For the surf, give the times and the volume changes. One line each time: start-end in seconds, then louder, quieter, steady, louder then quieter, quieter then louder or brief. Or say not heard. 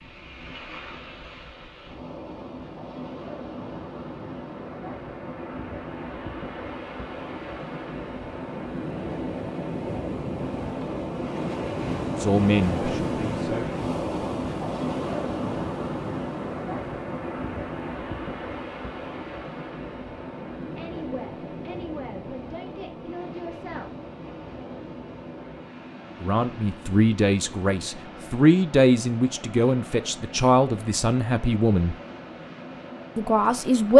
0.0-33.9 louder then quieter.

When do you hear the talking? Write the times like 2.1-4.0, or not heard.
12.2-13.8, 20.6-23.9, 26.2-31.9, 33.1-33.9.